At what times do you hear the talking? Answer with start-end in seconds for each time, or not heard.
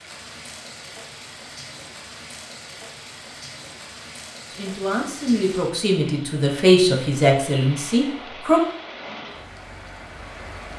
4.5-8.6.